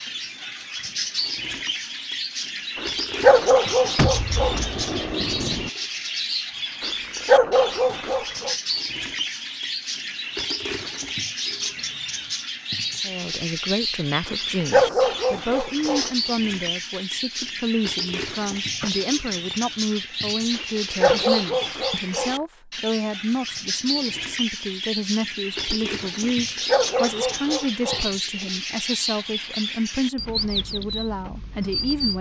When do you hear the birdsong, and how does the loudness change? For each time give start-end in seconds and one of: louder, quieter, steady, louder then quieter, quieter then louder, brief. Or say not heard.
0.0-32.1 steady.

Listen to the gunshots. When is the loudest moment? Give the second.
4 s.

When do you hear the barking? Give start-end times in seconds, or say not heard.
2.8-4.6, 6.8-8.6, 14.2-16.1, 20.6-22.4, 26.2-28.1.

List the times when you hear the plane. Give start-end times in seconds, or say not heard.
not heard.